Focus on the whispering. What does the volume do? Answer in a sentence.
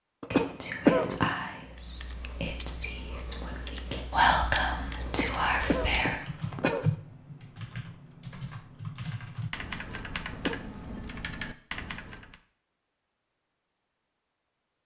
The volume of the whispering goes down, then up.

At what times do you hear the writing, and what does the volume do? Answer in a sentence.
The writing can't be heard in this clip.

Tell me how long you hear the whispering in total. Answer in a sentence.
You can hear the whispering for 6 seconds altogether.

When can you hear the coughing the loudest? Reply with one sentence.
The loudest moment of the coughing is at 1 second.